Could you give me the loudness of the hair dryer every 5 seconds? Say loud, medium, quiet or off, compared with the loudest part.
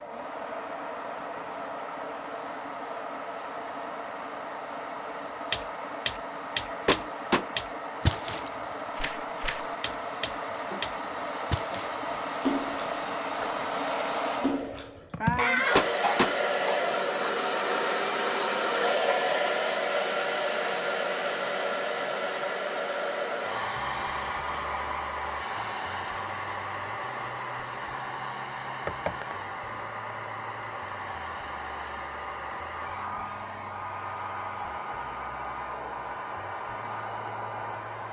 medium, medium, medium, loud, loud, medium, medium, medium.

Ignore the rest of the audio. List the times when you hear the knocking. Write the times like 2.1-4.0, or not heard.
6.8-7.5, 15.8-16.4, 28.9-29.4.